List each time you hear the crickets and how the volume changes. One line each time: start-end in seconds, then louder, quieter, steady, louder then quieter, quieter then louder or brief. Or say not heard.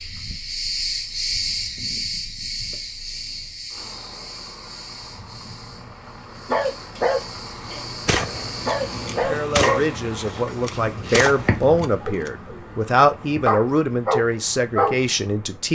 0.0-9.3 quieter then louder.